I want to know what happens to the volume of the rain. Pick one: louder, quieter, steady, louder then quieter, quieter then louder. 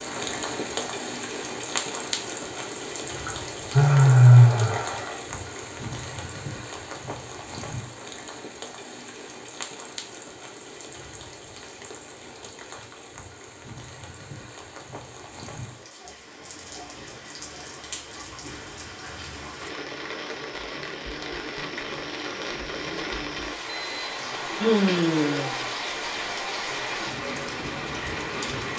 quieter then louder.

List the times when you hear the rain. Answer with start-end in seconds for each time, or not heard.
0.0-28.7.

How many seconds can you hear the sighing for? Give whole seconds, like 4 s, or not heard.
4 s.